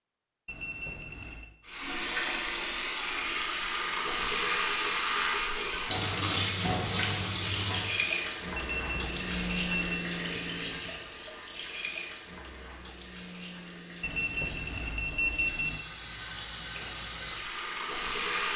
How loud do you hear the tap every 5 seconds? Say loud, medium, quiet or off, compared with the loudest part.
loud, loud, medium, medium.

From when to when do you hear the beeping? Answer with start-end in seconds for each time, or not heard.
0.5-1.5, 8.6-10.1, 14.0-15.8.